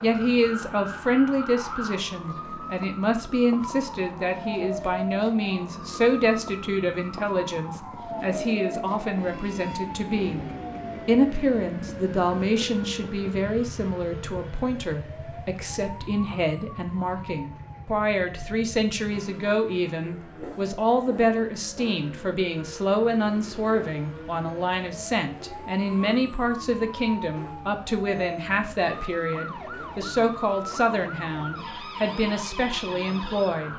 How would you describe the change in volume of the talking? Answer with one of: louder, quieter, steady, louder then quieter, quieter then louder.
steady.